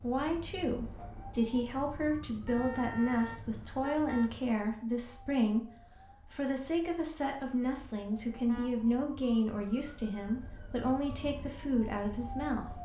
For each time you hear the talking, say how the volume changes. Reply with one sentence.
The talking can be heard from 0.0 to 12.7 s, at a steady volume.